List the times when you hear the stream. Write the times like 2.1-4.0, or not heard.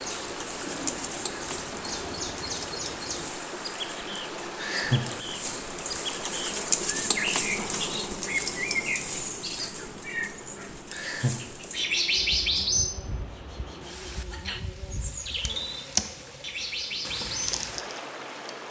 0.0-18.6.